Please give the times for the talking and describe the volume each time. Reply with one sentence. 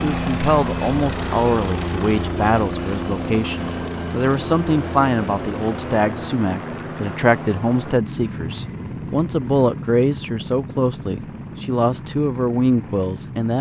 You can hear the talking from 0.0 to 13.5 s, at a steady volume.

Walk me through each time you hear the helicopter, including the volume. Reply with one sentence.
You can hear the helicopter from 0.0 to 13.5 s, getting quieter.